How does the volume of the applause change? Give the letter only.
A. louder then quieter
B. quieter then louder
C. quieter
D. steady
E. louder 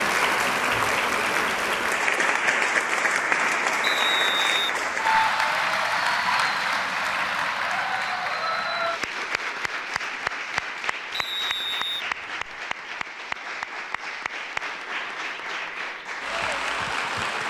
C.